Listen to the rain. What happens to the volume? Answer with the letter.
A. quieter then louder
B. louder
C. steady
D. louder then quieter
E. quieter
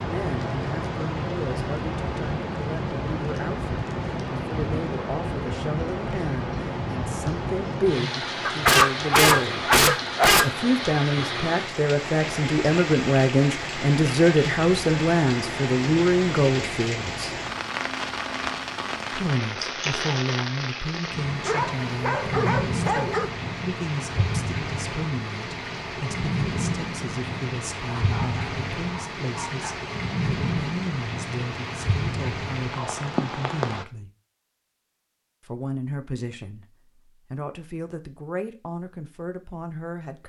C.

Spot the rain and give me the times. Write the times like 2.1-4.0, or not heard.
0.0-33.9.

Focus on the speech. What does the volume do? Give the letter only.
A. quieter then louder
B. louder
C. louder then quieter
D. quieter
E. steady
C.